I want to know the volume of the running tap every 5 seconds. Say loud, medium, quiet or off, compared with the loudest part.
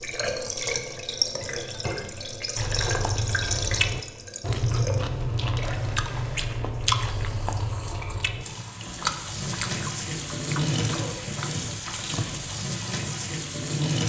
loud, medium, loud.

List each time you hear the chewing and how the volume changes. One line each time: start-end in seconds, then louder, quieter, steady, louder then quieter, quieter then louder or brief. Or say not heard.
2.5-12.7 quieter.